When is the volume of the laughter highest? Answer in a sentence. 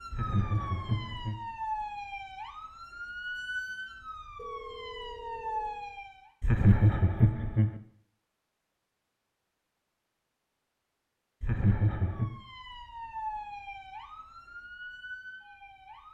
The volume of the laughter peaks at 7 seconds.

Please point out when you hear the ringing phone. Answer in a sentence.
You can hear the ringing phone from 4.3 to 5.8 s.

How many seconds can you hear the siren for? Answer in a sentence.
The siren can be heard for 10 seconds in total.